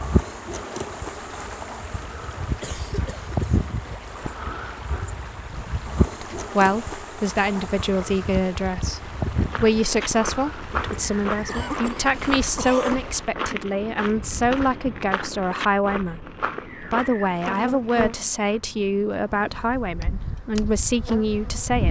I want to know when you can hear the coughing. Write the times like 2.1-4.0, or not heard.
2.6-3.6, 11.3-13.0.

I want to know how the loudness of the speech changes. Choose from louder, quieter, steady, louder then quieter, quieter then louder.
steady.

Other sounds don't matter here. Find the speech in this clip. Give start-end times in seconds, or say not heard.
6.2-21.8.